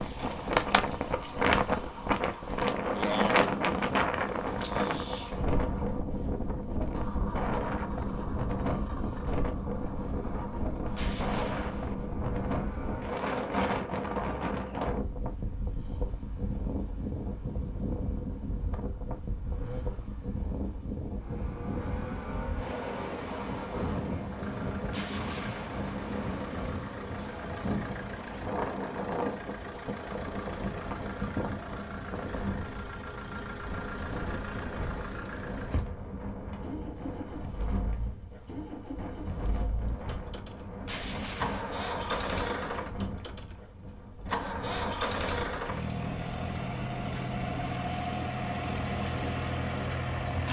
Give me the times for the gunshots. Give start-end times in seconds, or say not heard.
10.9-11.9, 24.9-25.8, 40.9-41.9.